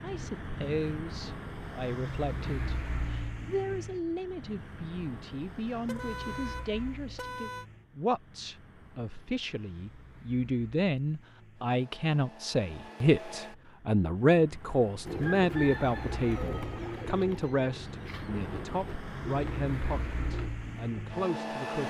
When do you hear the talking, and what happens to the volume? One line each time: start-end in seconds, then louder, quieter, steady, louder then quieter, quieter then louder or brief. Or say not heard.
0.0-21.8 louder then quieter.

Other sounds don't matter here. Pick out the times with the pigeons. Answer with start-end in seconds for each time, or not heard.
15.1-20.5.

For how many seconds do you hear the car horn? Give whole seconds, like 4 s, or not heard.
2 s.